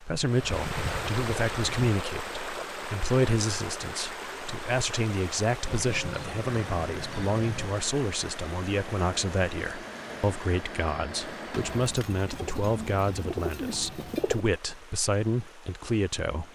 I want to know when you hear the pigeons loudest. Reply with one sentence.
The volume of the pigeons peaks at 14 seconds.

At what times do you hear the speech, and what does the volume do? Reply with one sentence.
The speech can be heard from 0.0 to 16.5 s, at a steady volume.